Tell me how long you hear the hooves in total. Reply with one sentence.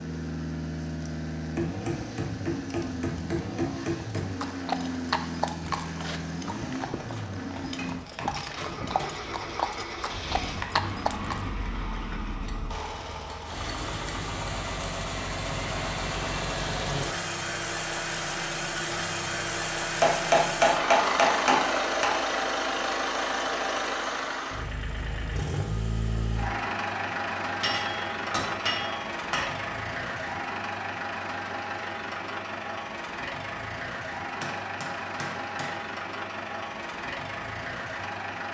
You can hear the hooves for 7 seconds altogether.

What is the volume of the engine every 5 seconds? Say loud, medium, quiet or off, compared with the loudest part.
medium, medium, medium, loud, loud, loud, medium, medium.